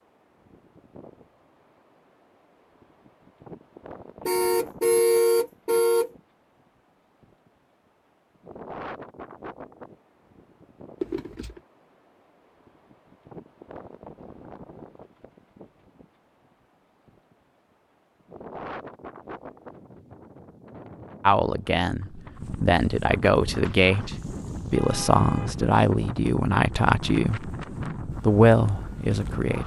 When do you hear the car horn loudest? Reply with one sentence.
The loudest moment of the car horn is at 5 seconds.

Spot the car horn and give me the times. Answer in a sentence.
The car horn can be heard from 4.2 to 6.1 s, from 11.0 to 11.6 s and from 24.8 to 25.6 s.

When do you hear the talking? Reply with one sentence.
The talking can be heard from 21.2 to 29.6 s.